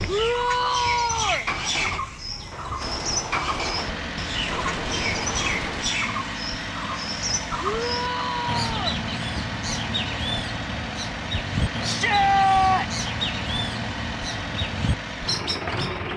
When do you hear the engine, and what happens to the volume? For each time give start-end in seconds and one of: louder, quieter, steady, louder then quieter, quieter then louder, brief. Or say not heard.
0.0-16.1 steady.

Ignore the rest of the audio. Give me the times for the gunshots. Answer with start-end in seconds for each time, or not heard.
2.5-5.8.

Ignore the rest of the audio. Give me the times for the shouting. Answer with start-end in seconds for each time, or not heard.
0.1-1.4, 7.6-9.0, 11.8-13.0.